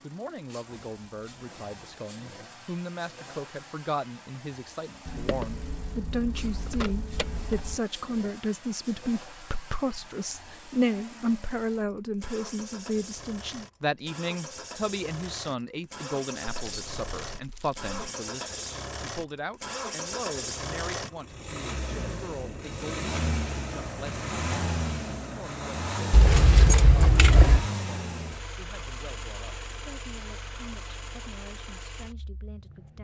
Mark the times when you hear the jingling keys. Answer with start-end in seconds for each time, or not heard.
5.0-7.8, 16.5-17.9, 26.1-27.7.